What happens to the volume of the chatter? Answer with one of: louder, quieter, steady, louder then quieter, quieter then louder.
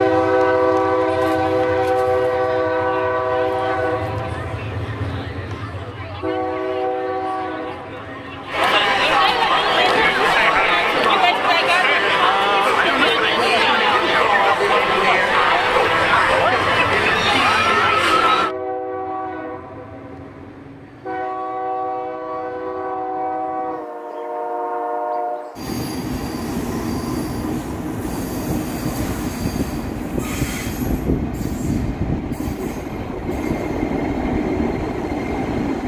louder.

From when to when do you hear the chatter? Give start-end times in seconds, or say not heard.
0.1-18.6.